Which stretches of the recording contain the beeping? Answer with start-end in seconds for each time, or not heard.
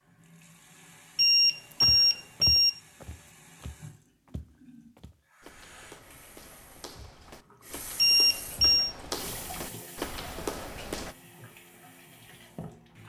1.1-2.7, 8.0-8.9.